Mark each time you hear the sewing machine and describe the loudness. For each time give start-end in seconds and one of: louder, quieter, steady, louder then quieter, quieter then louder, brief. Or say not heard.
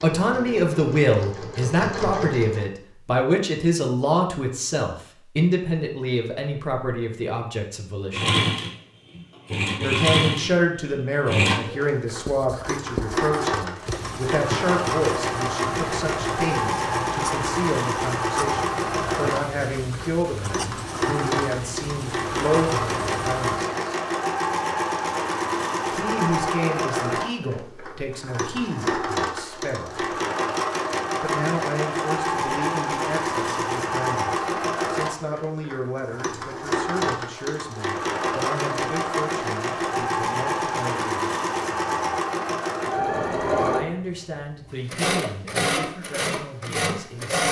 0.0-2.7 brief
8.1-47.4 steady.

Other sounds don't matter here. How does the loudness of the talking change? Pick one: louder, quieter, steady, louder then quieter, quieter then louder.
quieter.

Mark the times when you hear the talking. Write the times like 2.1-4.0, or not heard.
0.0-8.3, 9.8-23.8, 25.9-30.1, 31.2-41.3, 43.7-47.4.